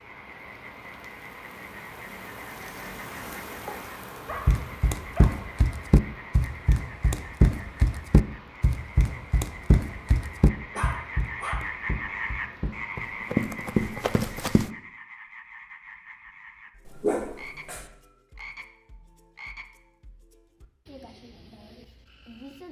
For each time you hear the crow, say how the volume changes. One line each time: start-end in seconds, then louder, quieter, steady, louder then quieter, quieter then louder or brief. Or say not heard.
not heard.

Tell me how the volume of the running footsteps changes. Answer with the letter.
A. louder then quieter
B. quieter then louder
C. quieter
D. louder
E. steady
B.